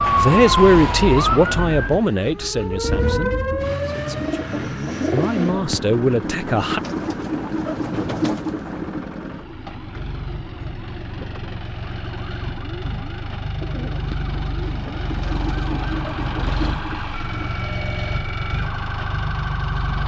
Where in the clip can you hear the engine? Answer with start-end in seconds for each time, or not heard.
0.0-20.0.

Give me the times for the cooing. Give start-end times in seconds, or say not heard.
2.7-9.1, 13.6-17.5.